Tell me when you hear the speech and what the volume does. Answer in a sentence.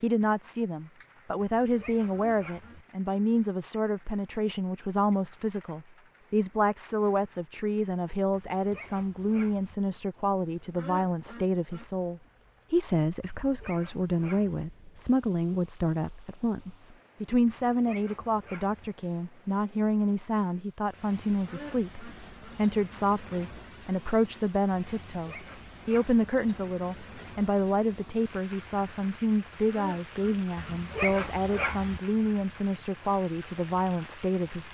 The speech can be heard from 0.0 to 34.6 s, at a steady volume.